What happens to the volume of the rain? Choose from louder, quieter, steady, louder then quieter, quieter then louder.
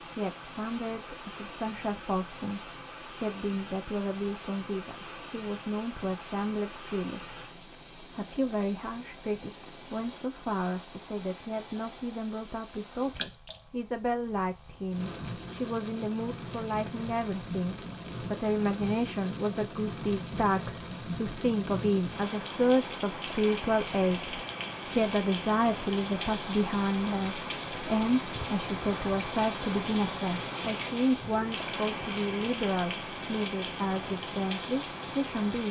louder.